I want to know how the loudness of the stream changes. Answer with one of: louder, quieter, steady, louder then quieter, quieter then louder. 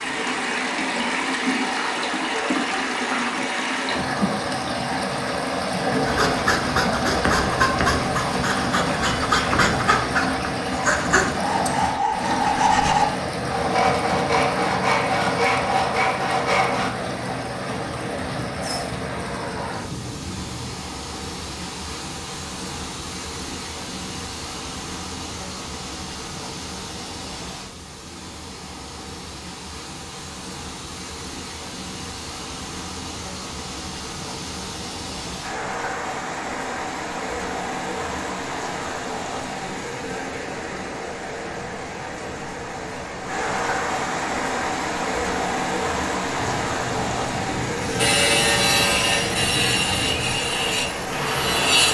quieter then louder.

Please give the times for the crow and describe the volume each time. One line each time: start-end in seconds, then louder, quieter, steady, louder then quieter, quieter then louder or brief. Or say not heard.
not heard.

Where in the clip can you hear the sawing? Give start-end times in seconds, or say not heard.
6.0-16.9, 47.8-51.8.